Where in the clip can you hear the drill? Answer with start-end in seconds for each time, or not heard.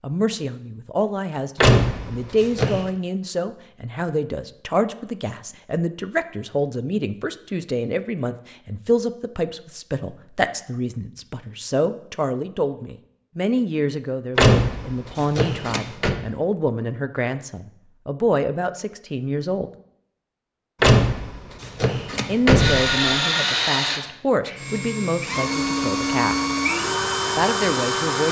22.6-28.2.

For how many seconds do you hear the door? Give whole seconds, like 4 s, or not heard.
5 s.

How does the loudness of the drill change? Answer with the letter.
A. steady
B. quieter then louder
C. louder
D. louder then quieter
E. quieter
B.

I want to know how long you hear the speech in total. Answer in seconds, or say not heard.
25 s.